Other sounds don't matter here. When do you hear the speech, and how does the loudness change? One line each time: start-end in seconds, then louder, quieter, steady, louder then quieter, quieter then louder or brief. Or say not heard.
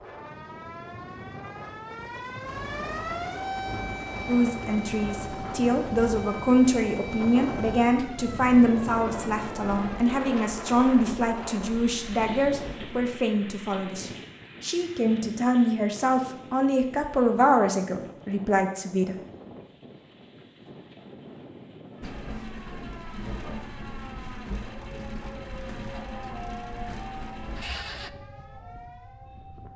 4.2-19.1 steady.